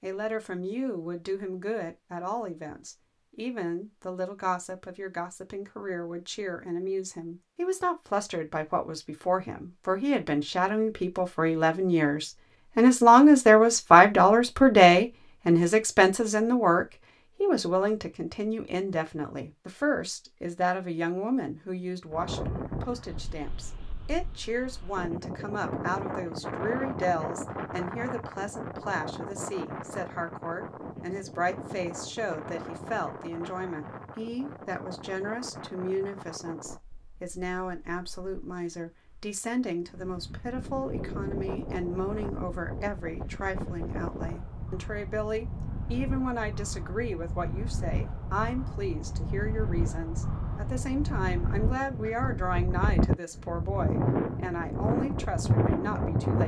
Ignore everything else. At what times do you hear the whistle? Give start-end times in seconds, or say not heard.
not heard.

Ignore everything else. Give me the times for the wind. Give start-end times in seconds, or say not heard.
22.1-56.4.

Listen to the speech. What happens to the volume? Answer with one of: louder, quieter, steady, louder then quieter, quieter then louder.
louder then quieter.